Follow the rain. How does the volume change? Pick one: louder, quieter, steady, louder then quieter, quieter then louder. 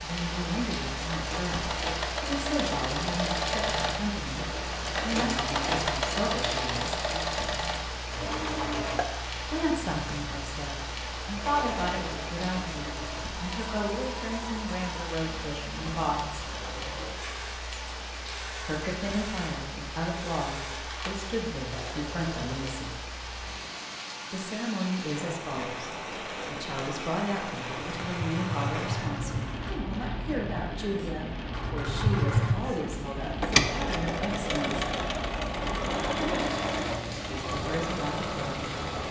steady.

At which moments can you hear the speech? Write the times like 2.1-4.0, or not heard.
0.0-7.0, 9.4-16.5, 18.6-22.9, 24.3-34.9, 37.3-38.8.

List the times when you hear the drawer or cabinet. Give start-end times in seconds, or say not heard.
not heard.